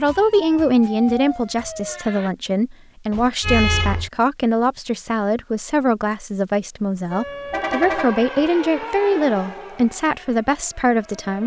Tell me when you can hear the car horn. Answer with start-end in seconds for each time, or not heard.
3.1-4.1, 7.2-8.3.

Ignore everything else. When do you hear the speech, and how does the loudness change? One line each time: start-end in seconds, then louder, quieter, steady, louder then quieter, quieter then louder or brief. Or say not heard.
0.0-11.4 steady.